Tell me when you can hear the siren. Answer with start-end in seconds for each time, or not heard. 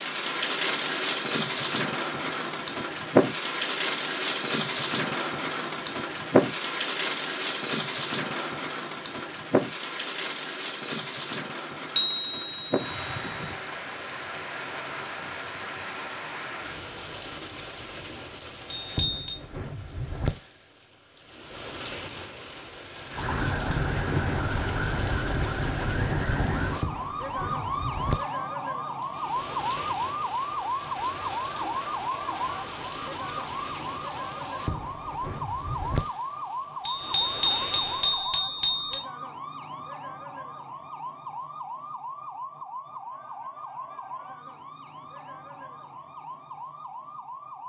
23.1-47.6.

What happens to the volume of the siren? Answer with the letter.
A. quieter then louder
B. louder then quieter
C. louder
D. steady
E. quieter
E.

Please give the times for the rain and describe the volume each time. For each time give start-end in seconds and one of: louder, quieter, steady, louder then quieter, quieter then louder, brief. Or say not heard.
0.0-38.3 quieter.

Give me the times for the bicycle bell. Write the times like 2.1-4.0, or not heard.
11.9-13.6, 18.8-19.4, 36.9-39.0.